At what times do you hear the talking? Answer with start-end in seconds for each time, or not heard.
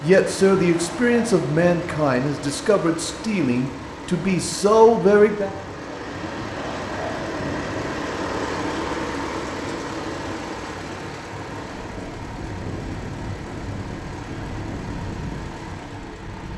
0.0-5.5.